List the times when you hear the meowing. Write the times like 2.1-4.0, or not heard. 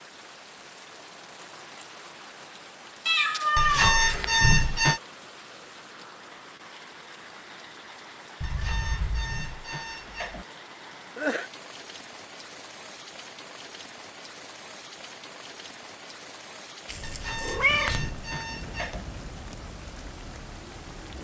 3.0-4.2, 8.4-9.4, 16.9-18.1.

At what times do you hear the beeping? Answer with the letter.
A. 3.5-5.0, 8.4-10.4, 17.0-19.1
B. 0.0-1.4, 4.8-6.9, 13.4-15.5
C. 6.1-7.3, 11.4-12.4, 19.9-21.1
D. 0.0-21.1
A.